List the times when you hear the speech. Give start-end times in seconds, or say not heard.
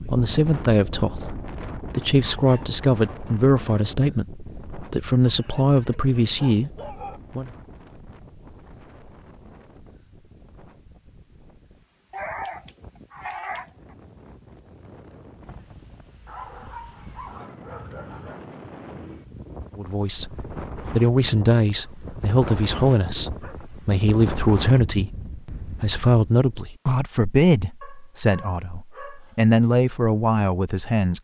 0.1-7.5, 19.8-31.2.